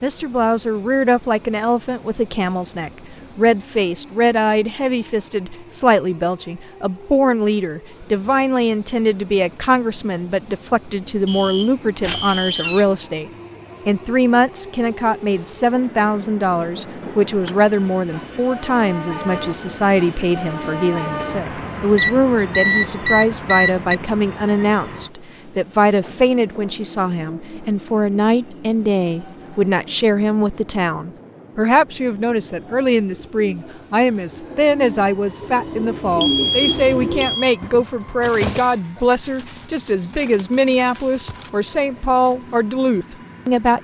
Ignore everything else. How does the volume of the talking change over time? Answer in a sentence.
The volume of the talking stays about the same.